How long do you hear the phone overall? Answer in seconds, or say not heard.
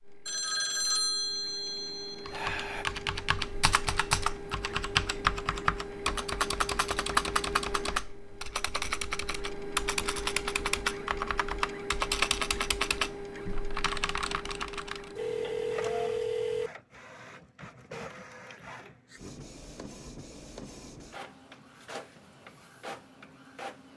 4 s.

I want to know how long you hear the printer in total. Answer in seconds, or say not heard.
24 s.